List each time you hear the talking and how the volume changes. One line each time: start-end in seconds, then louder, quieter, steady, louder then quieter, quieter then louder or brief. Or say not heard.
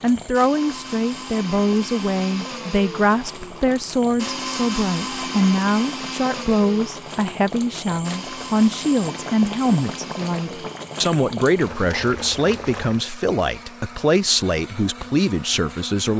0.0-16.1 steady.